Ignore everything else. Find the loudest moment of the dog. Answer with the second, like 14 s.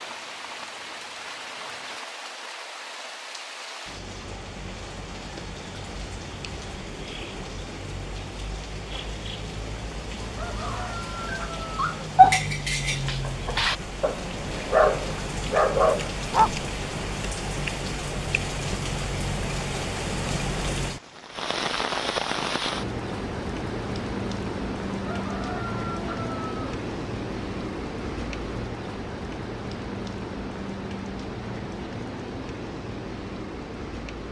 12 s.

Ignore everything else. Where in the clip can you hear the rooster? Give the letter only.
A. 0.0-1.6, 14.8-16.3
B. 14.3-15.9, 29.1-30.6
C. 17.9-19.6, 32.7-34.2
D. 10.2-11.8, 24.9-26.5
D.